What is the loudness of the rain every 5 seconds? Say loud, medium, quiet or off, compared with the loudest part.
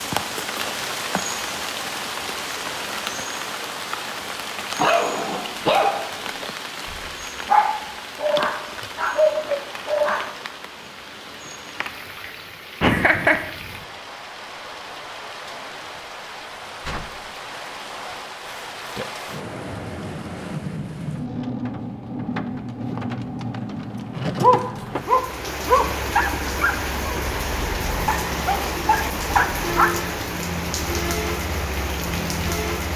loud, medium, medium, medium, loud, loud, loud.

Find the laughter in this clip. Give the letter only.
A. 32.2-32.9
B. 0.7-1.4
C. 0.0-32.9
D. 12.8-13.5
D.